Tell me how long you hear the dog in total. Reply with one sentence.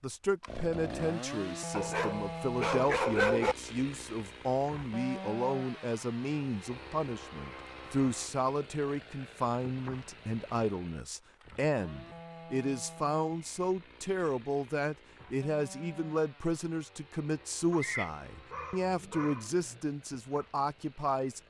You can hear the dog for 4 seconds altogether.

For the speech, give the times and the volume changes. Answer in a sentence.
The speech can be heard from 0.0 to 21.4 s, at a steady volume.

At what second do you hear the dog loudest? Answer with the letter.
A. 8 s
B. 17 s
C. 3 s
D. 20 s
C.